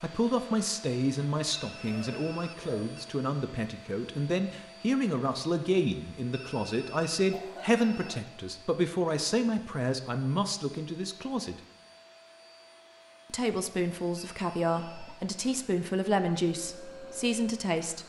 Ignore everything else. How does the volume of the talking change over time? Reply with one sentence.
The volume of the talking stays about the same.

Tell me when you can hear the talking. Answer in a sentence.
You can hear the talking from 0.0 to 11.6 s and from 13.3 to 18.0 s.